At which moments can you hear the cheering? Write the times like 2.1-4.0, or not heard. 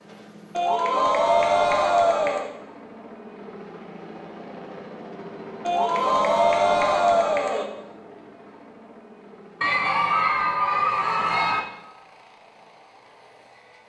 0.6-2.5, 5.7-7.7, 9.6-11.6.